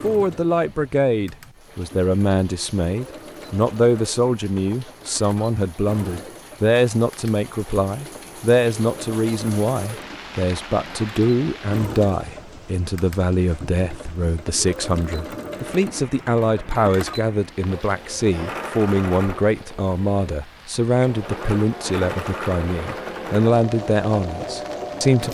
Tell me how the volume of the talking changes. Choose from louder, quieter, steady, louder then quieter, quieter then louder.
steady.